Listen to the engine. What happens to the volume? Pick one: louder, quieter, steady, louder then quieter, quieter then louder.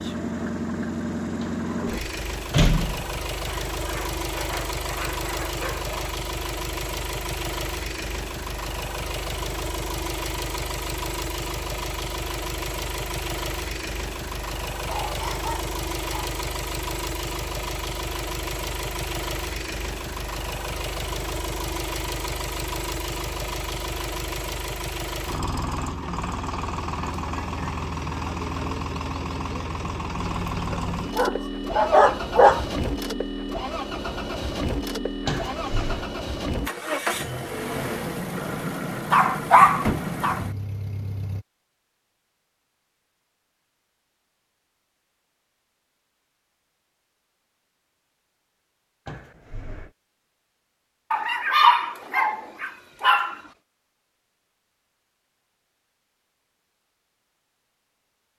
steady.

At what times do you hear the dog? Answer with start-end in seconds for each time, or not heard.
3.5-6.2, 14.8-16.3, 30.7-32.6, 39.1-40.4, 51.1-53.4.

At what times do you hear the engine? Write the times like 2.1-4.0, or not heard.
0.0-41.5.